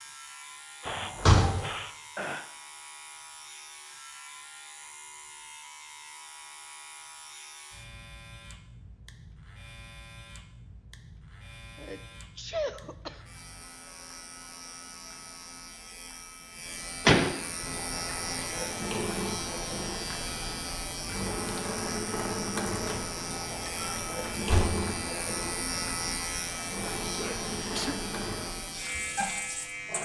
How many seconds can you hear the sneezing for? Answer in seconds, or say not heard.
4 s.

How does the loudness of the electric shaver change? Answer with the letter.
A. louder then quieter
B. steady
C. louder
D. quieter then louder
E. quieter
C.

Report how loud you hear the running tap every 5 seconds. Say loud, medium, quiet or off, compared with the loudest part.
off, off, off, loud, loud, loud.